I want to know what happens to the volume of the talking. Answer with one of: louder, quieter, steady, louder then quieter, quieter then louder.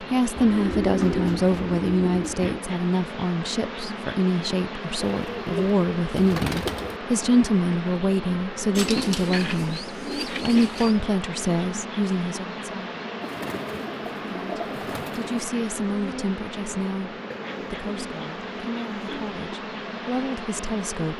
quieter.